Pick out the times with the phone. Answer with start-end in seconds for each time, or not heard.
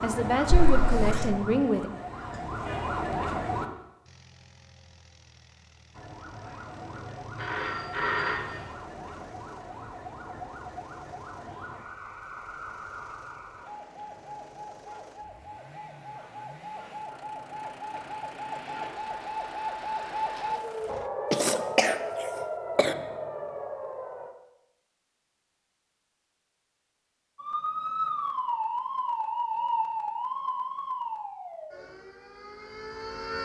7.3-8.8.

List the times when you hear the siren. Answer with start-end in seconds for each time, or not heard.
0.0-3.7, 5.9-24.3, 27.4-33.4.